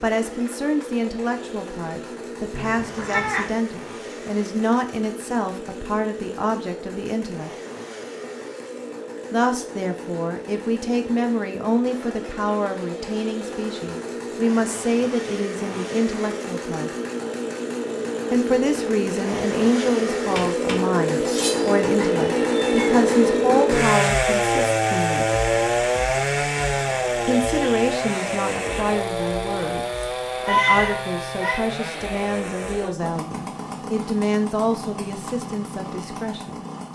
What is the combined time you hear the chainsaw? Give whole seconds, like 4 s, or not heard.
37 s.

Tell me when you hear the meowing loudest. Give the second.
31 s.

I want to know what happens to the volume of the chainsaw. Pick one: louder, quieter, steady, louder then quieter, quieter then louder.
louder then quieter.